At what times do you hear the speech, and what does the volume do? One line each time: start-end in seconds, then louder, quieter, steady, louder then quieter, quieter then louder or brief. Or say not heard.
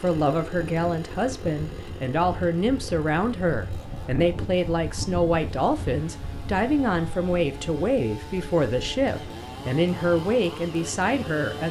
0.0-11.6 steady.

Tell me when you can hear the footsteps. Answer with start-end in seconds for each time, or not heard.
not heard.